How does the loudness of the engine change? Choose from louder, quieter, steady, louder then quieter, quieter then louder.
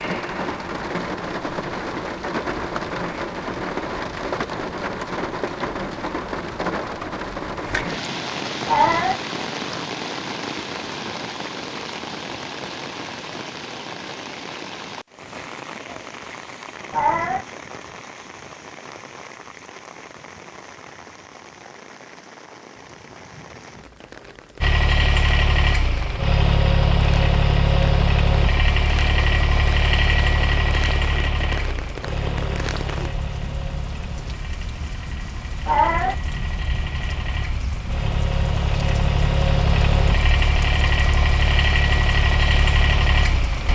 quieter then louder.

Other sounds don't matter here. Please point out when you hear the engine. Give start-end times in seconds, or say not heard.
24.6-43.7.